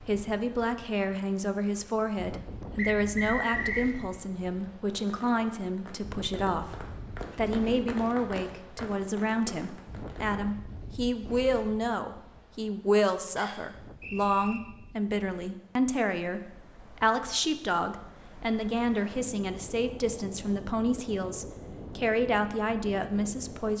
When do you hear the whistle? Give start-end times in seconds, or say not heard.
2.8-3.9, 13.3-14.6.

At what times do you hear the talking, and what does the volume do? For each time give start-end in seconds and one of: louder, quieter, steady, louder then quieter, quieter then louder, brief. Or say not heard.
0.1-23.7 steady.